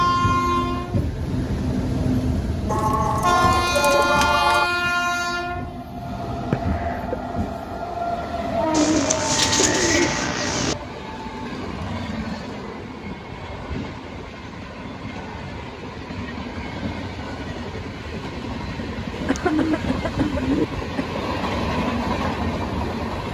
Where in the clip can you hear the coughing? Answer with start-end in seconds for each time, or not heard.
6.3-7.2, 19.2-21.2.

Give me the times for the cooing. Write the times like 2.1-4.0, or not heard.
2.6-4.7, 8.7-10.8, 19.1-20.6.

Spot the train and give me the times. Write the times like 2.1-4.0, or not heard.
0.0-23.3.